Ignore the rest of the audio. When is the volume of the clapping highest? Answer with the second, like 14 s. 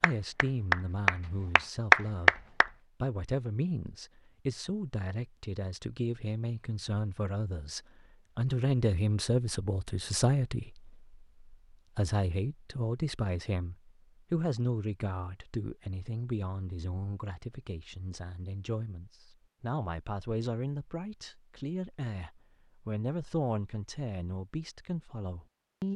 2 s.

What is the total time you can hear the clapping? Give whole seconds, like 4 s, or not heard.
3 s.